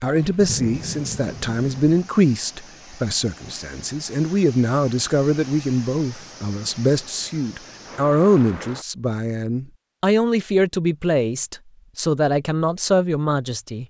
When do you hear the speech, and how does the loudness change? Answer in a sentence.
The speech can be heard from 0.0 to 13.8 s, at a steady volume.